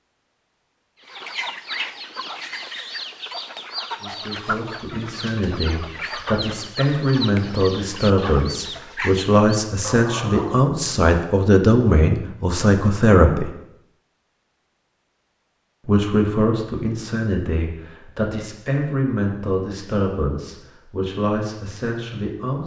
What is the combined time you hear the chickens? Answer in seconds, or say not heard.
10 s.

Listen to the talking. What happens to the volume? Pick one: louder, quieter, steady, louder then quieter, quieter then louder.
louder then quieter.